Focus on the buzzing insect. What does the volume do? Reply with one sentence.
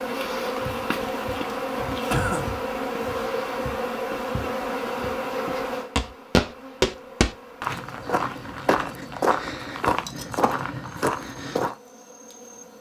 The volume of the buzzing insect goes down.